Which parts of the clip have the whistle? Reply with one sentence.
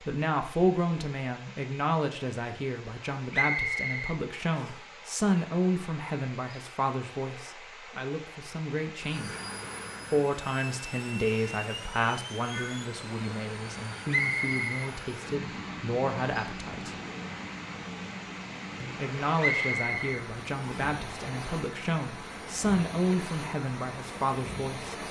You can hear the whistle from 3.3 to 4.8 s, from 14.1 to 14.9 s and from 19.4 to 20.9 s.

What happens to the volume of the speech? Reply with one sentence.
The volume of the speech stays about the same.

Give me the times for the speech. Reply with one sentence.
The speech can be heard from 0.0 to 9.4 s, from 10.1 to 16.9 s and from 18.8 to 25.0 s.